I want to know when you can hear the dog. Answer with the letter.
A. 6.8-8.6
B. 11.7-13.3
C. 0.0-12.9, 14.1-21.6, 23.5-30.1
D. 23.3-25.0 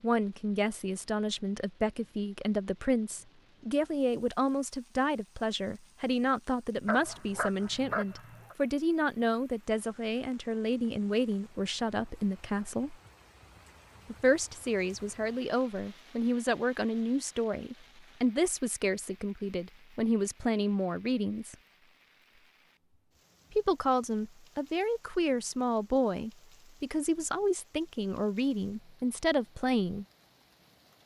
A.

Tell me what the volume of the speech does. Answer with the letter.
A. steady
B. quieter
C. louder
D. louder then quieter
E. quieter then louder
A.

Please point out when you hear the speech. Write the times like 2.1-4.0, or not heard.
0.0-12.9, 14.1-21.6, 23.5-30.1.